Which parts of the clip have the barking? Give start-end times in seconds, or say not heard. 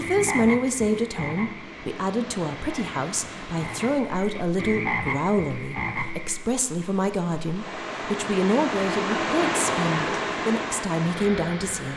not heard.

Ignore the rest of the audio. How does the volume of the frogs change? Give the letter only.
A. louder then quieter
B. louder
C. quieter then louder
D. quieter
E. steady
C.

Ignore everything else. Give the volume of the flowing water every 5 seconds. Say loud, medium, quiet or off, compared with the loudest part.
medium, loud, loud.